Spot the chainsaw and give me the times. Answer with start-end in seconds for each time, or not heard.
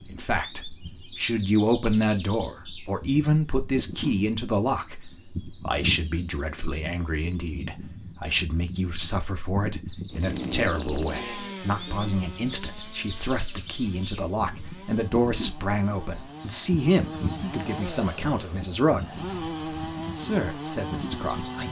10.1-21.6.